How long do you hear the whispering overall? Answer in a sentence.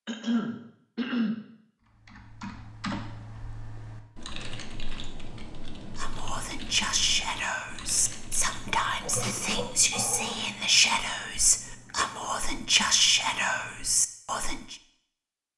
The whispering can be heard for 9 seconds in total.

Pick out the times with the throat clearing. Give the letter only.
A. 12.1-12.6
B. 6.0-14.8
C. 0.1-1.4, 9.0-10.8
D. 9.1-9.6
C.